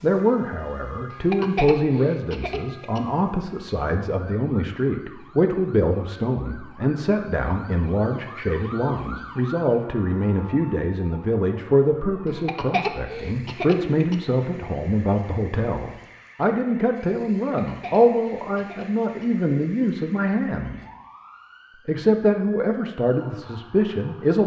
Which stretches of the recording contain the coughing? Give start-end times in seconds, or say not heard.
1.1-3.0, 12.4-14.2, 17.6-19.2.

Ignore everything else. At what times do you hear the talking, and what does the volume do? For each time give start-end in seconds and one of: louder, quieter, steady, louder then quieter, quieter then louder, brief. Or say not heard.
0.0-20.8 steady
21.9-24.4 brief.